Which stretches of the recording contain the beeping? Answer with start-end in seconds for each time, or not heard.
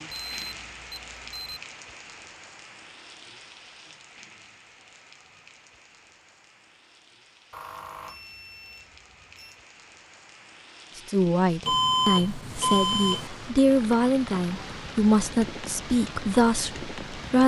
0.1-1.6, 7.5-9.6, 11.7-13.3.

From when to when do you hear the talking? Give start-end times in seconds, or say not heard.
10.9-17.4.